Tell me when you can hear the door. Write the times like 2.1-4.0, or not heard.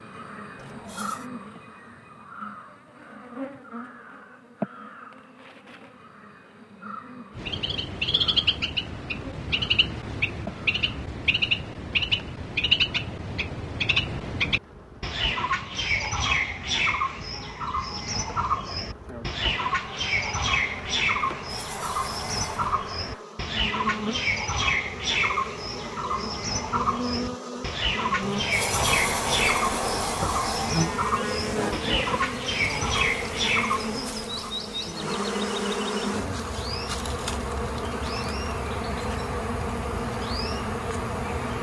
0.6-1.3, 21.3-22.7, 28.2-30.9.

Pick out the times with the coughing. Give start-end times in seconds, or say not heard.
not heard.